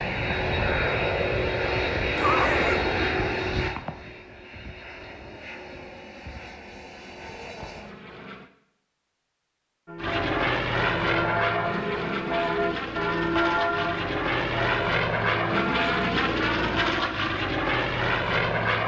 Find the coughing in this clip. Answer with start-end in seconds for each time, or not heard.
2.1-2.9.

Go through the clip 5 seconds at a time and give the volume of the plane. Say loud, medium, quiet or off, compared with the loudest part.
loud, quiet, loud, loud.